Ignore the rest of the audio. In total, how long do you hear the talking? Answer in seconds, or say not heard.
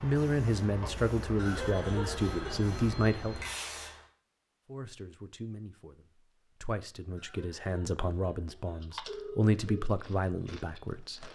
10 s.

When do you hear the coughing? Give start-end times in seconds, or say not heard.
1.4-2.8, 7.2-8.8.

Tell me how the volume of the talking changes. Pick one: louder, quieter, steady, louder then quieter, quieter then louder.
quieter then louder.